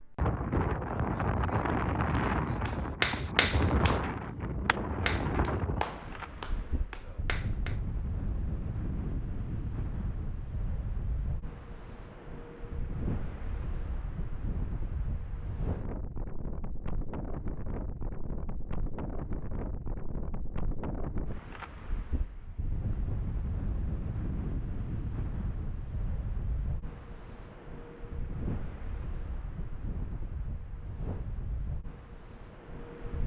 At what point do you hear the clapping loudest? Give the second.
3 s.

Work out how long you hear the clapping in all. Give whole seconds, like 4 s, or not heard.
6 s.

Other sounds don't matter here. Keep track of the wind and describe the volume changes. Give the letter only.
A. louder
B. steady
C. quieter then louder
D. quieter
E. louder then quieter
D.